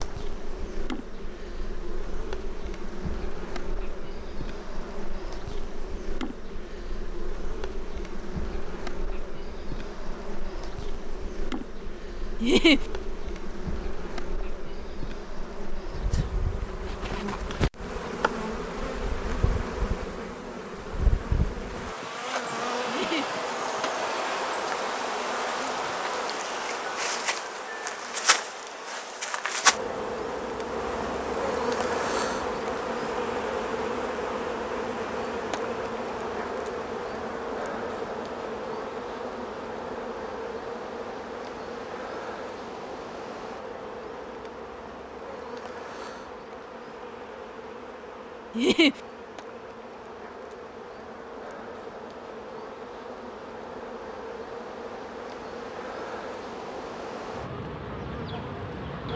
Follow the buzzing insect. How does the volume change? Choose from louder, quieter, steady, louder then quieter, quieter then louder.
louder then quieter.